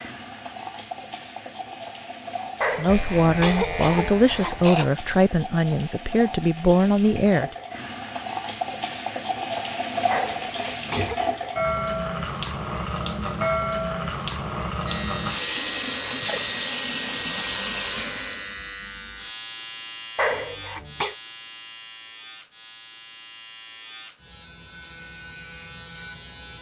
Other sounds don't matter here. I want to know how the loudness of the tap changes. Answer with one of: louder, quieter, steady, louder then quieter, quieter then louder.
louder.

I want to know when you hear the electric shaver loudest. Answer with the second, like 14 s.
16 s.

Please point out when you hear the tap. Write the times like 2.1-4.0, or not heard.
0.0-18.6.